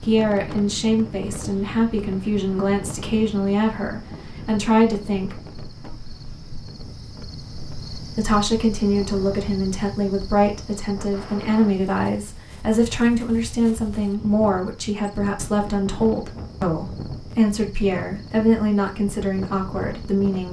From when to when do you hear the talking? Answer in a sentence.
The talking can be heard from 0.0 to 5.4 s and from 8.1 to 20.4 s.